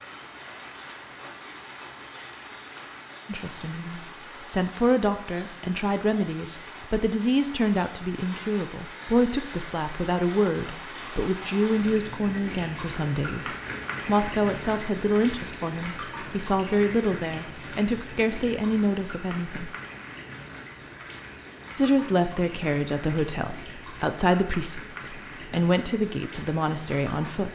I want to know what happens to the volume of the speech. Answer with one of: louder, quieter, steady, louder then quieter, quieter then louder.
steady.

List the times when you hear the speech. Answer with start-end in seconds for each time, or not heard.
3.2-19.7, 21.8-27.5.